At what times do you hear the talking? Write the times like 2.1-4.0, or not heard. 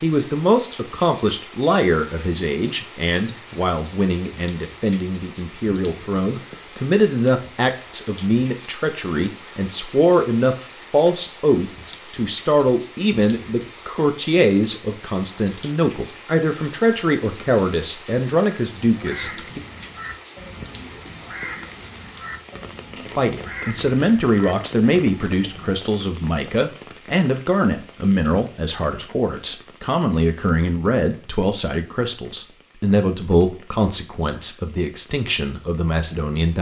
0.0-19.6, 23.1-36.5.